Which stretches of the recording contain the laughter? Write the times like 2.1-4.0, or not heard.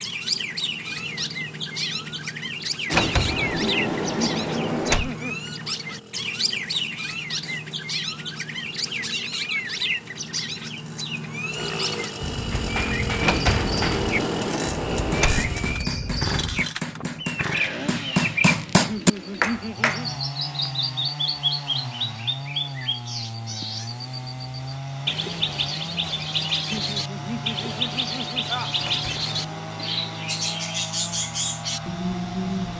3.6-5.3, 18.9-20.1, 26.7-28.8.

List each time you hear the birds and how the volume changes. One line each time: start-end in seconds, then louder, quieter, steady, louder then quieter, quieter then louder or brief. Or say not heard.
0.0-32.7 steady.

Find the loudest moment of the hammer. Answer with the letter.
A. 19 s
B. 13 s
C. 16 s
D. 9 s
A.